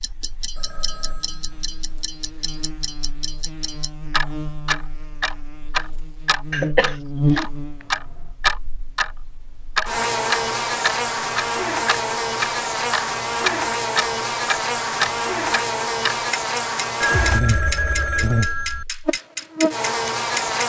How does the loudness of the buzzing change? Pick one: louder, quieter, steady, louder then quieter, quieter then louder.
louder.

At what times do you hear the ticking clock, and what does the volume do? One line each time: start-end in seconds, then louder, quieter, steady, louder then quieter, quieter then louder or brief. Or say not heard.
0.0-20.6 louder then quieter.